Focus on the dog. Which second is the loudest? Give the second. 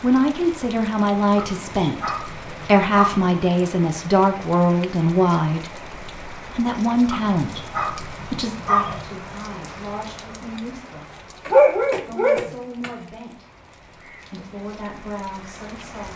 12 s.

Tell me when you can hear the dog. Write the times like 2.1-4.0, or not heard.
1.4-3.2, 7.1-9.1, 11.4-12.9.